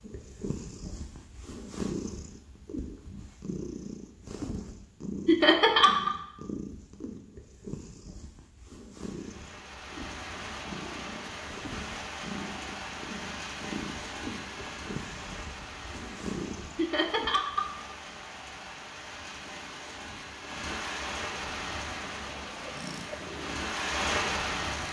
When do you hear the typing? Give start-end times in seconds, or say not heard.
not heard.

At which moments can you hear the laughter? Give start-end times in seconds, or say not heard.
5.2-6.1, 16.8-17.6.